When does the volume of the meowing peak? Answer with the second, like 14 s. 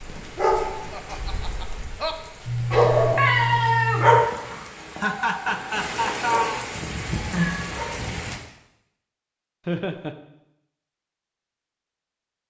3 s.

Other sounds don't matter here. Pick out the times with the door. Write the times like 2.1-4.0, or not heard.
not heard.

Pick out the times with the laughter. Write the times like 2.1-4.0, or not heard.
0.9-2.1, 4.9-6.7, 9.7-10.2.